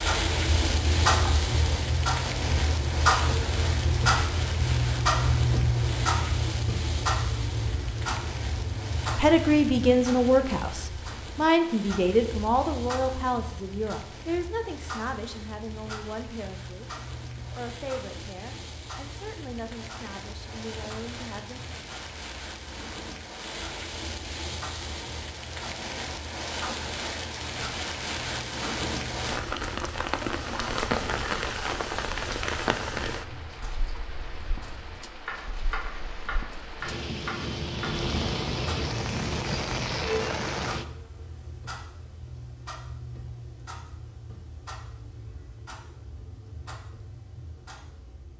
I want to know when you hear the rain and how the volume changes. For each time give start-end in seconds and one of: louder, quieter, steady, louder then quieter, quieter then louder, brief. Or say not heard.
0.0-40.9 quieter then louder.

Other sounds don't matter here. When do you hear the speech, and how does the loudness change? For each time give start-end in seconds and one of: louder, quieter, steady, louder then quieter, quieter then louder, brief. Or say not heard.
9.2-21.6 quieter.